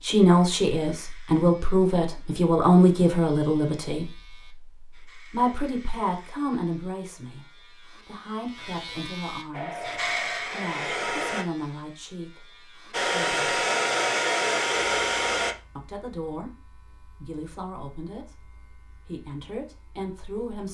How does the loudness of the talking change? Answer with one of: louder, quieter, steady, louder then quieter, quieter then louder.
quieter.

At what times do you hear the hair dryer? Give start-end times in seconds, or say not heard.
9.5-11.4, 12.9-15.6.